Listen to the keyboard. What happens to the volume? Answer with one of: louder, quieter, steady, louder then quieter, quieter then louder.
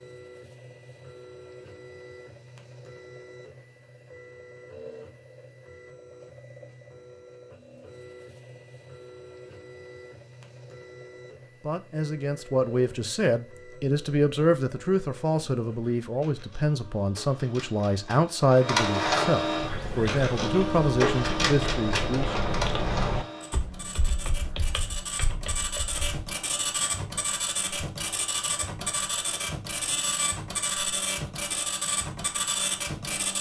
louder then quieter.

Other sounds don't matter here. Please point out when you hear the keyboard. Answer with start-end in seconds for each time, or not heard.
19.6-26.2.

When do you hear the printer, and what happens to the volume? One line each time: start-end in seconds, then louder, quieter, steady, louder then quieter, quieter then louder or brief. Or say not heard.
0.0-33.3 louder.